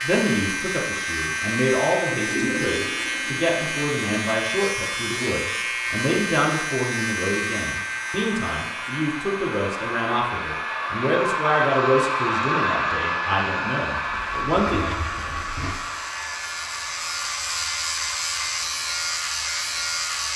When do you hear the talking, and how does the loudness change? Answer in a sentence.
The talking can be heard from 0.0 to 14.9 s, at a steady volume.